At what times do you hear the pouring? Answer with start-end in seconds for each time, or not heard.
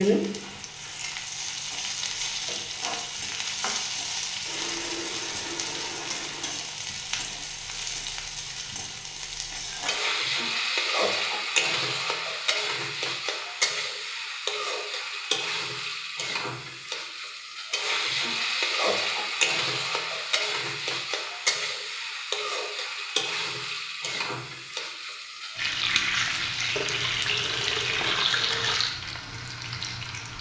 4.5-6.5, 26.8-28.8.